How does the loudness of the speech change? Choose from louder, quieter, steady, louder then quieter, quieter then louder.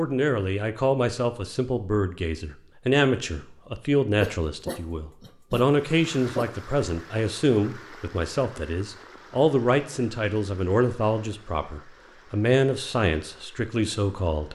steady.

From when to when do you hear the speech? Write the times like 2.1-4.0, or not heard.
0.0-14.5.